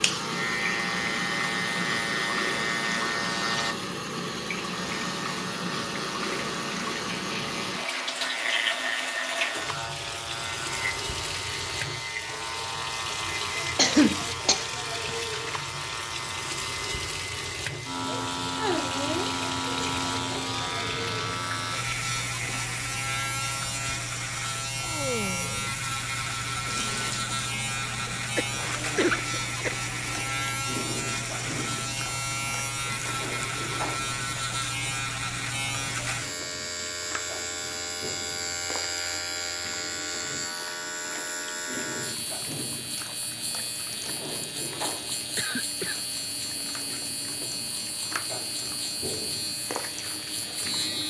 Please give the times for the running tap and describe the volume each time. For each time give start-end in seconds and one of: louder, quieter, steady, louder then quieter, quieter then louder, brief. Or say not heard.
0.0-51.0 quieter.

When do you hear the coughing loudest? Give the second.
14 s.